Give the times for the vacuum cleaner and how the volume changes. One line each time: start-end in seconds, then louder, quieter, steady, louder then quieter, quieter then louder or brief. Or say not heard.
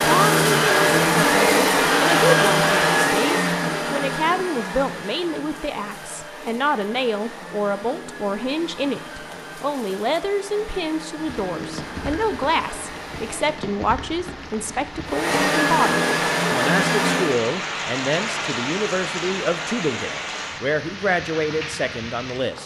0.0-13.6 quieter
15.1-17.4 brief.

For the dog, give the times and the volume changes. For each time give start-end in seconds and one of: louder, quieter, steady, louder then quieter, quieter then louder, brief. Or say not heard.
not heard.